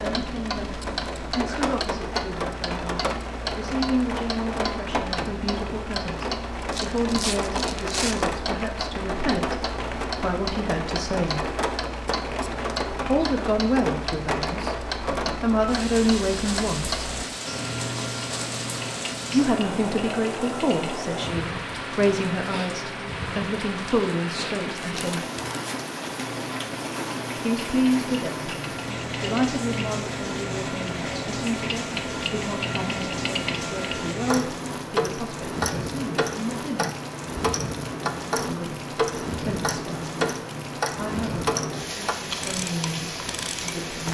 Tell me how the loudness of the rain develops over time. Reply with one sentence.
The volume of the rain stays about the same.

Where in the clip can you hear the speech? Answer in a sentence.
You can hear the speech from 0.0 to 11.5 s, from 13.1 to 17.0 s, from 19.3 to 25.2 s, from 27.4 to 36.9 s, from 38.5 to 40.1 s and from 41.0 to 44.0 s.